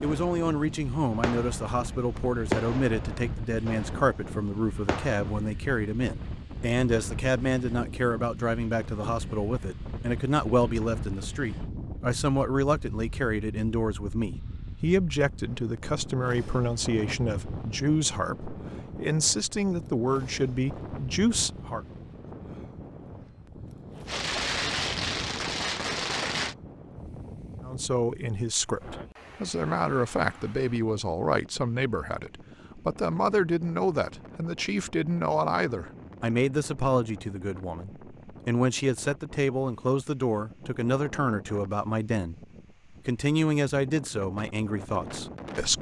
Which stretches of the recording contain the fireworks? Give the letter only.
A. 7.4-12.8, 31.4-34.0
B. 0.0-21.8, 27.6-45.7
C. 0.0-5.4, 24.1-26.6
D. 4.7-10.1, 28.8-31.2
C.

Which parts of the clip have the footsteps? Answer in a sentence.
The footsteps can't be heard in this clip.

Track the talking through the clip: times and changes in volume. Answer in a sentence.
The talking can be heard from 0.0 to 21.8 s, at a steady volume; and from 27.6 to 45.7 s, at a steady volume.